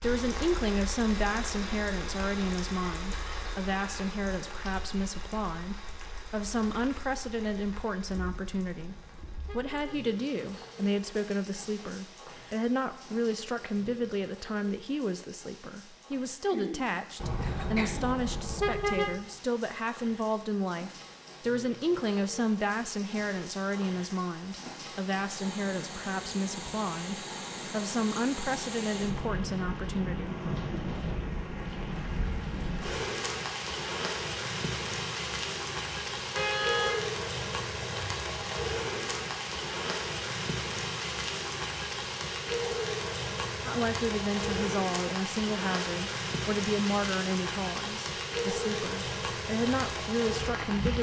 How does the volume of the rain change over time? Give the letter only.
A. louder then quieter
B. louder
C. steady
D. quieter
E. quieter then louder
E.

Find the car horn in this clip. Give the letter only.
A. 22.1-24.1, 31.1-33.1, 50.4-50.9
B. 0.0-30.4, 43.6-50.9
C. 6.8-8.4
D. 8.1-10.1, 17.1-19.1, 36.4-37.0
D.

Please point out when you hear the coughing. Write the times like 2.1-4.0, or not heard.
16.4-18.1.